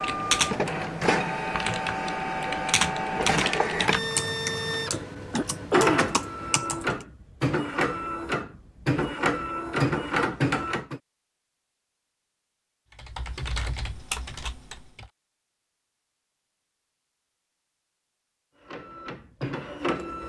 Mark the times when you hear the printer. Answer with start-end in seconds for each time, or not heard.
0.0-11.0, 18.6-20.2.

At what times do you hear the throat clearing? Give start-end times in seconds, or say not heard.
5.3-6.0.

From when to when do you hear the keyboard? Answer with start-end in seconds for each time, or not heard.
0.0-7.0, 12.9-15.1.